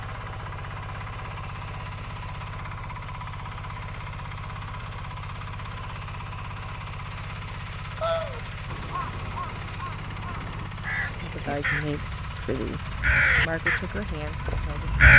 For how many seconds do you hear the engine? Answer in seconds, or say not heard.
15 s.